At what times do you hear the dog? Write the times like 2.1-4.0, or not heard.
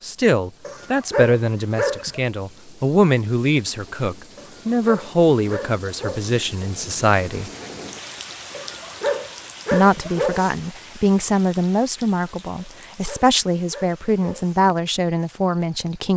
0.7-2.2, 4.3-6.4, 8.5-10.6, 12.6-14.7.